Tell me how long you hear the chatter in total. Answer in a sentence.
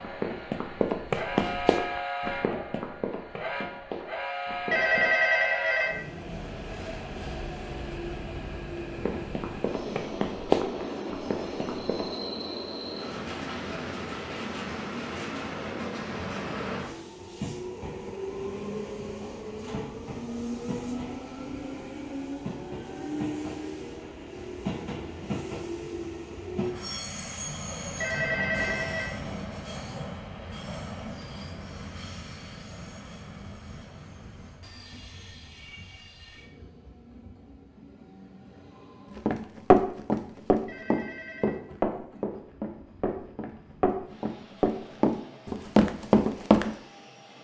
You can't hear the chatter here.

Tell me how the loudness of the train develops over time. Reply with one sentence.
The loudness of the train goes down.